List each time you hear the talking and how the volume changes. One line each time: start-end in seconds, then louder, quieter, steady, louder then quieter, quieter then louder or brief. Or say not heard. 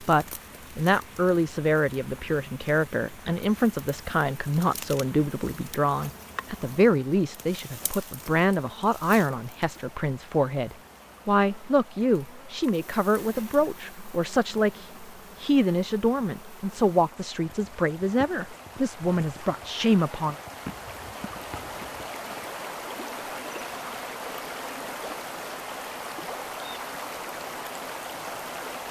0.0-20.4 steady.